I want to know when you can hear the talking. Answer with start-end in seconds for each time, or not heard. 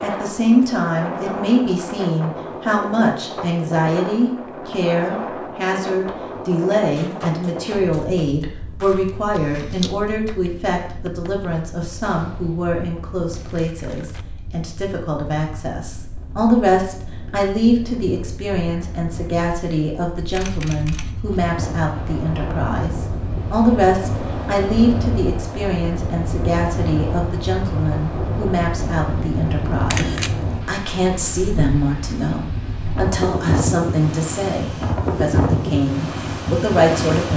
0.0-37.3.